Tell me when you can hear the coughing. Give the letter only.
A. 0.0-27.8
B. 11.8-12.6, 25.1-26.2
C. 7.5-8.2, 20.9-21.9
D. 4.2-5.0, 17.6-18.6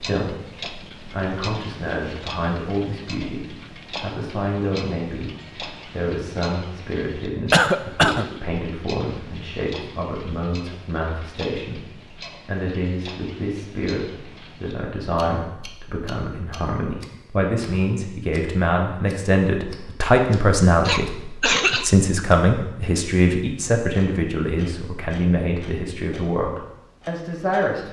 C.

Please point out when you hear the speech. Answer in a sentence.
The speech can be heard from 0.0 to 27.8 s.